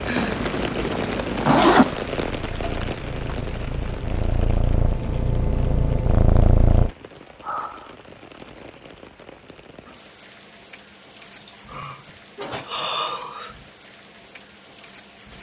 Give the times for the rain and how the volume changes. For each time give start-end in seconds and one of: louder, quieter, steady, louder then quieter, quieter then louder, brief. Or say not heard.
0.0-15.3 quieter.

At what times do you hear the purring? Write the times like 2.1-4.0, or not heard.
0.1-6.9.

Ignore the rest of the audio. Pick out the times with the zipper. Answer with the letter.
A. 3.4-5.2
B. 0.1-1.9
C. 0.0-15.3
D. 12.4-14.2
B.